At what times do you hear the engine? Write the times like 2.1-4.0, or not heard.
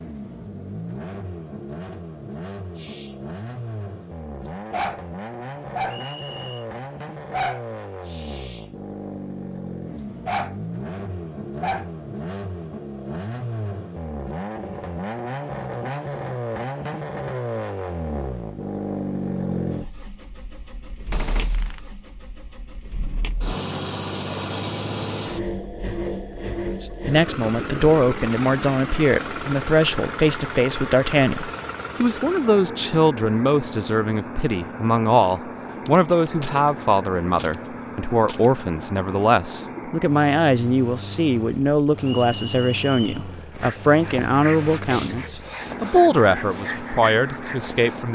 0.0-48.1.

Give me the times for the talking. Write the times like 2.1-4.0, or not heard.
26.7-48.1.